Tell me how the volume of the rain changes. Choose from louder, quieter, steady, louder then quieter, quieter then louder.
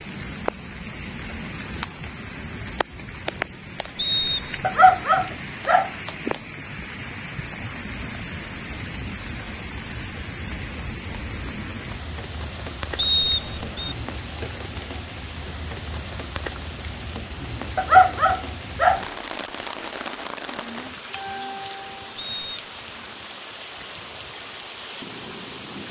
steady.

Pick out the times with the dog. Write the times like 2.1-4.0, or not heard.
4.6-5.9, 17.8-19.1.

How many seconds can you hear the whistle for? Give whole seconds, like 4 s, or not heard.
2 s.